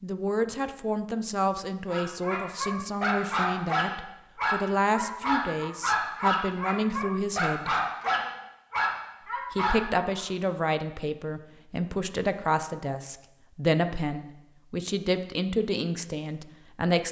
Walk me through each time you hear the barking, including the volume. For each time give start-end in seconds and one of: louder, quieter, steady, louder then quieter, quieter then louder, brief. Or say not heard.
1.9-10.2 steady.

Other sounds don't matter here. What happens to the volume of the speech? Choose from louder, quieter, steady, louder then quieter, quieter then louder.
steady.